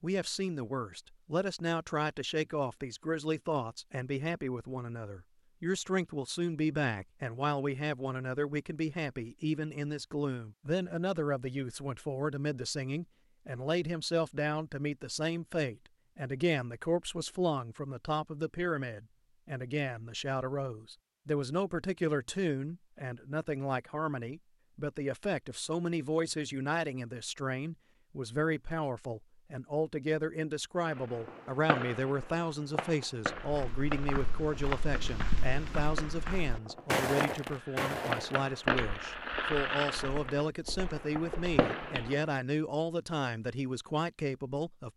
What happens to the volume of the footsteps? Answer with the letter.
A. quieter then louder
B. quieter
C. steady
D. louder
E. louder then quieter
E.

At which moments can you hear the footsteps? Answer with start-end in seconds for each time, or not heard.
33.2-42.1.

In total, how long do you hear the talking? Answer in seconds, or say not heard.
45 s.